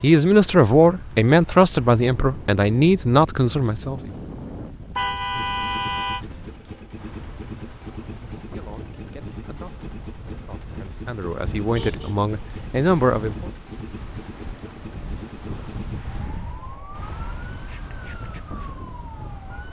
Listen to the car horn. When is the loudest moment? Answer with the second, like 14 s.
5 s.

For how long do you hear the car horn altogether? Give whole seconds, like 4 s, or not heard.
2 s.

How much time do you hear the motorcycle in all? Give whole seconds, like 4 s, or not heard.
11 s.